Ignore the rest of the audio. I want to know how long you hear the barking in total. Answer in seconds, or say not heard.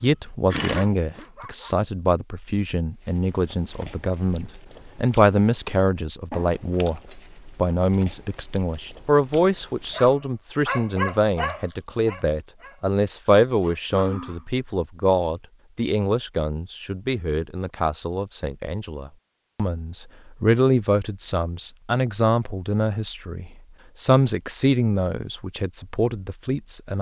6 s.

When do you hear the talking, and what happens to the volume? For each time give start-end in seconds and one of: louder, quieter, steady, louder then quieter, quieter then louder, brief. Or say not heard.
0.0-26.9 steady.